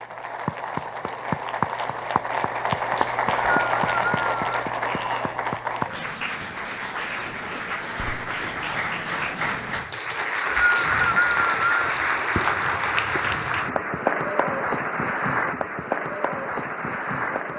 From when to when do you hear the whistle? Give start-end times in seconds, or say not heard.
3.0-4.7, 10.1-11.8.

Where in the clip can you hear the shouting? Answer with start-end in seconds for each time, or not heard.
4.8-5.5.